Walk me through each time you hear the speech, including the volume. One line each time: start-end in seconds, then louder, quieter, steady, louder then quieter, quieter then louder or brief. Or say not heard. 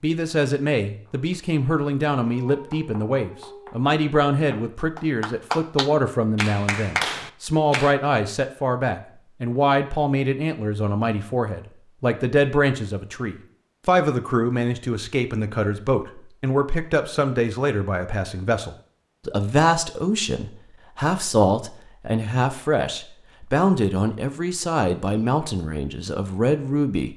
0.0-27.1 steady.